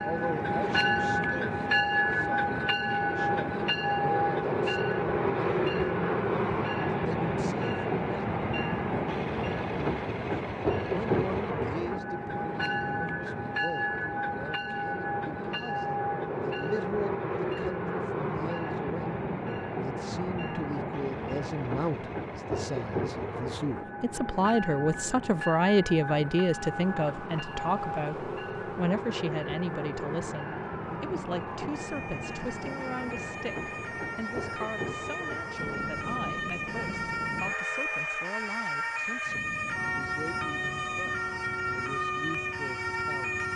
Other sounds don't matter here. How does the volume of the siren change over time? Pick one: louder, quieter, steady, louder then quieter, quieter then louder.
louder.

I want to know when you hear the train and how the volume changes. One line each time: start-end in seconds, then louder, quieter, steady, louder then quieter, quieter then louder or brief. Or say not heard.
0.0-43.5 quieter.